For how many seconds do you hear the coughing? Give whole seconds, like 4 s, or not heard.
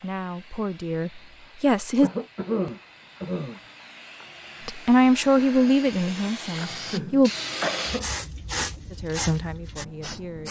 3 s.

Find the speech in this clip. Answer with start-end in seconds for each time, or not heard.
0.0-2.1, 4.7-7.3, 8.9-10.4.